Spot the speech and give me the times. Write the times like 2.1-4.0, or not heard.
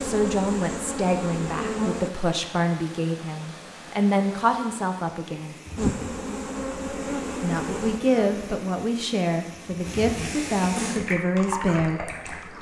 0.0-5.5, 7.4-12.0.